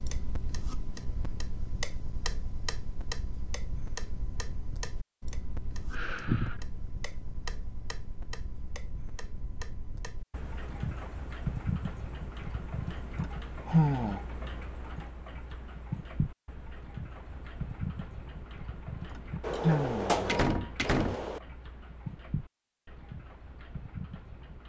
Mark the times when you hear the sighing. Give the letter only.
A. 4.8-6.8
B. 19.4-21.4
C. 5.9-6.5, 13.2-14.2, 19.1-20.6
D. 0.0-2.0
C.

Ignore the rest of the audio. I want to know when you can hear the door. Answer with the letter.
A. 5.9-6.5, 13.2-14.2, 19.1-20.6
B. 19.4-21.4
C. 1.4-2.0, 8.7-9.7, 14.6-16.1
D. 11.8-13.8
B.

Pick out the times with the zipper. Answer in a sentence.
The zipper can't be heard in this clip.